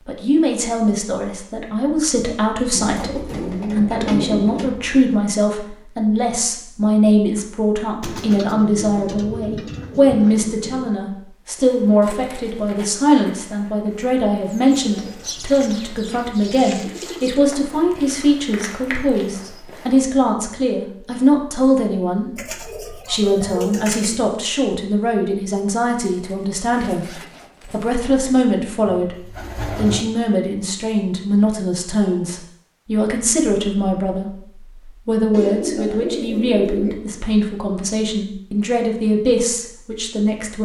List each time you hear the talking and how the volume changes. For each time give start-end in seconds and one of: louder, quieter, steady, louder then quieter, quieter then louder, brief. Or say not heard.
0.1-34.4 steady
35.0-40.5 steady.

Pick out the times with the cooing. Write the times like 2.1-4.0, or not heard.
2.8-5.0, 8.0-10.9, 14.7-17.4, 22.4-24.2, 28.9-30.1, 35.3-37.0.